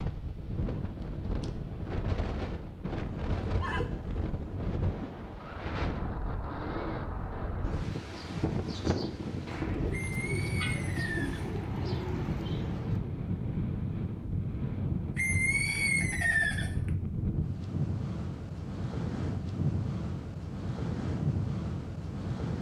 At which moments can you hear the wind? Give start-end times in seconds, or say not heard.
0.0-22.5.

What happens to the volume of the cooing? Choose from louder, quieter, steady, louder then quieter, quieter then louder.
louder.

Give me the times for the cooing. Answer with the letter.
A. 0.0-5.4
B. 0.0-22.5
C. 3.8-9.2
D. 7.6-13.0
D.